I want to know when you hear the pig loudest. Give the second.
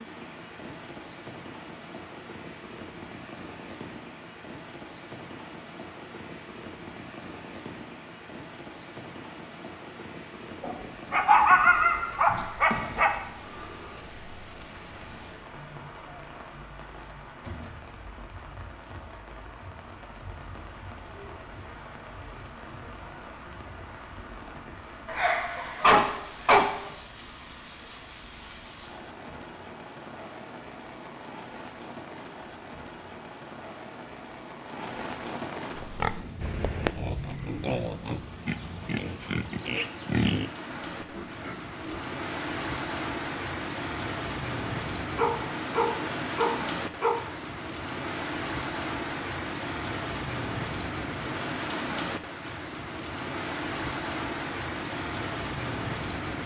40 s.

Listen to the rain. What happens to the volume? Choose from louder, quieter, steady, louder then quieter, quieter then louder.
louder.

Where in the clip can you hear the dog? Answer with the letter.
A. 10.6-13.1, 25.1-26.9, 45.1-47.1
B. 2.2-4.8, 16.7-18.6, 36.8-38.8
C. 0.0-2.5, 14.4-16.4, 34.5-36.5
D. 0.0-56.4
A.